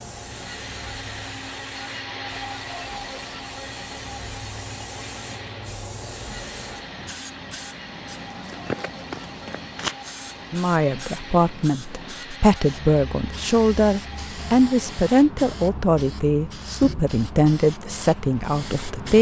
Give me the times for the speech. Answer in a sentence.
The speech can be heard from 10.5 to 19.1 s.